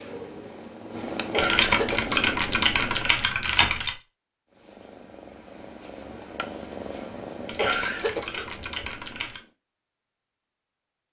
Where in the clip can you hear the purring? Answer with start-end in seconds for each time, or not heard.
0.0-3.1, 4.5-9.6.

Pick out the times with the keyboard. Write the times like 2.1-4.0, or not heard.
1.4-4.0, 7.5-9.4.